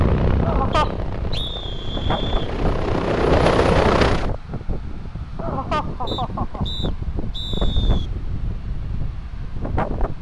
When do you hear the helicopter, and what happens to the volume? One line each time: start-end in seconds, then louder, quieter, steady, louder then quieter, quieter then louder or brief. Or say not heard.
0.0-4.3 quieter then louder.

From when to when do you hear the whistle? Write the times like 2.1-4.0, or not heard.
0.7-2.5, 6.0-8.1.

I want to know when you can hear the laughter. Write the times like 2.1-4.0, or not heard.
0.4-0.9, 5.3-6.7.